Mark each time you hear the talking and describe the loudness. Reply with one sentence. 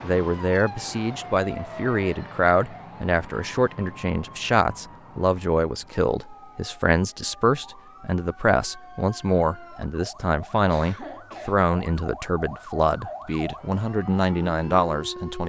You can hear the talking from 0.0 to 15.4 s, at a steady volume.